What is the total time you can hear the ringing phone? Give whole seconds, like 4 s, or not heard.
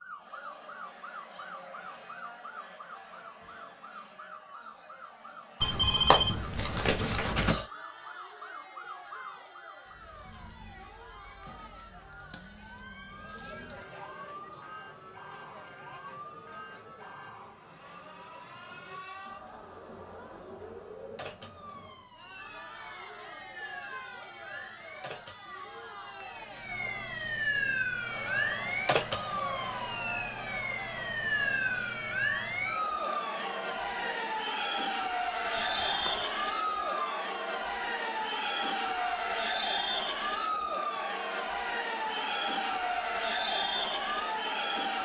3 s.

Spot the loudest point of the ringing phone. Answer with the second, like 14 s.
6 s.